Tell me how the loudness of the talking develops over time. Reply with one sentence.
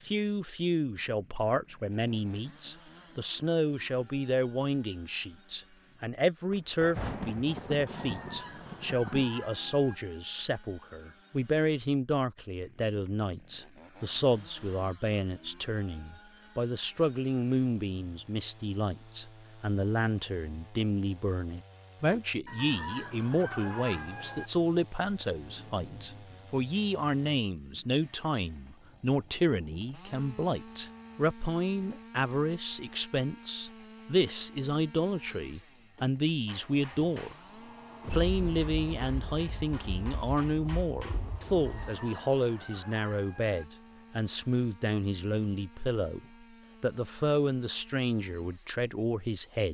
The volume of the talking stays about the same.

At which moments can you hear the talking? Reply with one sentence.
The talking can be heard from 0.0 to 37.4 s and from 38.0 to 49.6 s.